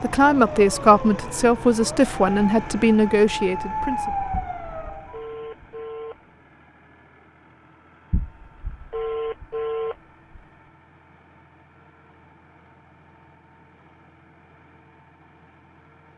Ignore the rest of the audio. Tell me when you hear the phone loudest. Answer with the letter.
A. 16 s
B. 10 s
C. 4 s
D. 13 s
B.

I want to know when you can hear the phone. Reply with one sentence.
You can hear the phone from 4.3 to 6.2 s and from 8.1 to 10.4 s.